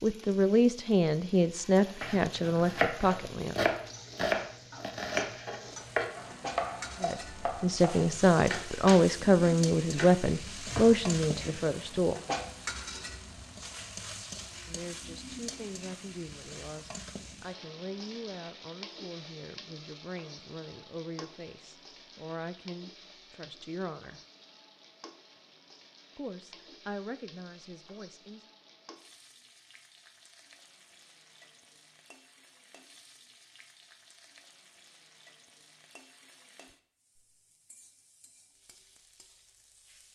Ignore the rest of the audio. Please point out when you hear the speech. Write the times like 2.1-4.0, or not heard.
0.0-3.5, 7.0-12.2, 14.7-24.2, 26.1-28.4.